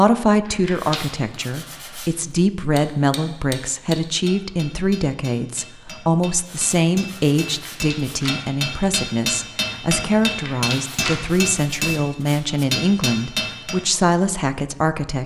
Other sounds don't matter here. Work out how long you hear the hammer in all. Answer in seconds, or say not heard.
11 s.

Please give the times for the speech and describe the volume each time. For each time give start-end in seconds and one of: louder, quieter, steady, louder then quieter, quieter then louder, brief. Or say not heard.
0.0-15.2 steady.